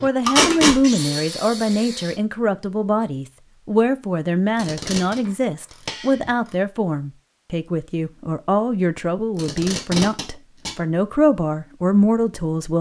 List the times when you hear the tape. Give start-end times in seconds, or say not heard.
0.2-0.8, 4.5-5.2, 9.3-10.7.